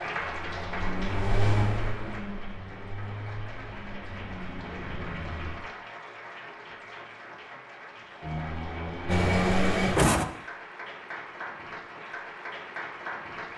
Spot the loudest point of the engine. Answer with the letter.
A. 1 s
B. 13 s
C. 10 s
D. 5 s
C.